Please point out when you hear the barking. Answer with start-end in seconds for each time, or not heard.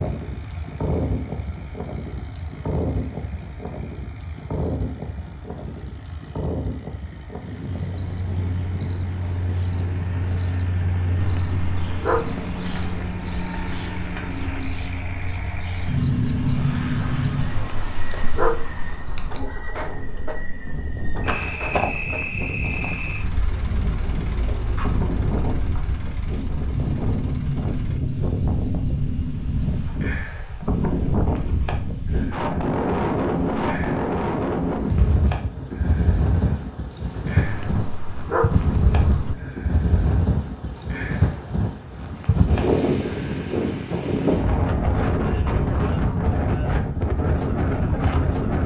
11.2-12.8, 17.5-19.4, 37.5-39.4.